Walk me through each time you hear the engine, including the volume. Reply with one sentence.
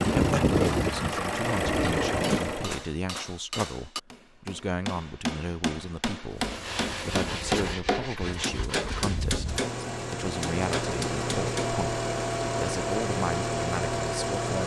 You can hear the engine briefly from 0.0 to 2.9 s; and from 6.3 to 14.6 s, getting louder.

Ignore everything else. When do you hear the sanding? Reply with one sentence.
The sanding can be heard from 6.5 to 9.2 s.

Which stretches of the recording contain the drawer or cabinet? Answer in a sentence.
You can't hear the drawer or cabinet here.